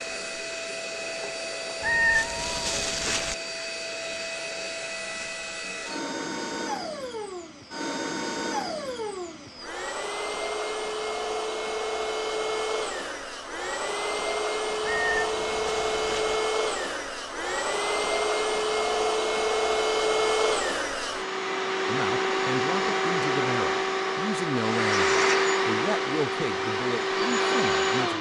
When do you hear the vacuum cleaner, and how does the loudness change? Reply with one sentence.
You can hear the vacuum cleaner from 0.0 to 28.1 s, getting louder.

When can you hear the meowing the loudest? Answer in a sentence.
The volume of the meowing peaks at 2 seconds.